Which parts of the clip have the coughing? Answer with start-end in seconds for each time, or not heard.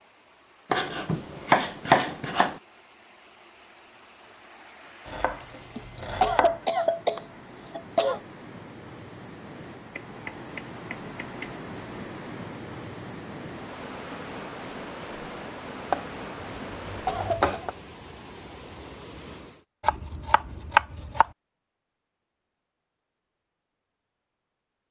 5.8-8.2, 16.6-17.7.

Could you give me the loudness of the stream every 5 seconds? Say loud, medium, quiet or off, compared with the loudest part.
quiet, medium, loud, loud, off.